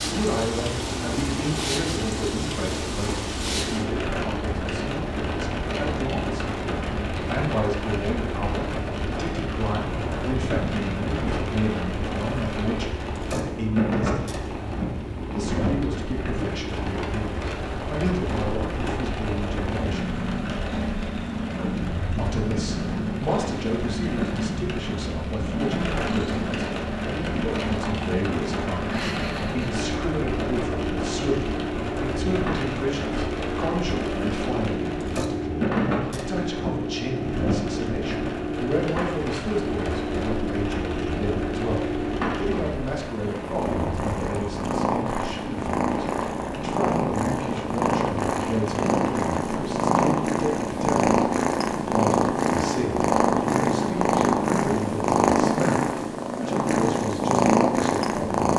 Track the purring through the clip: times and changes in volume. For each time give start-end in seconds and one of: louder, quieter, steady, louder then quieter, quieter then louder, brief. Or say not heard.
0.0-58.5 louder.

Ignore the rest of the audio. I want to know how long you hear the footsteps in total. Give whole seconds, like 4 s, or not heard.
not heard.